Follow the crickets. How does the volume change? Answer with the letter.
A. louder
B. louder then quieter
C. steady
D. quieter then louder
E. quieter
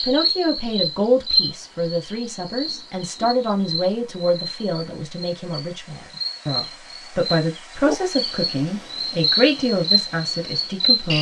D.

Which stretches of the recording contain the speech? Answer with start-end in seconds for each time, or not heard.
0.0-11.1.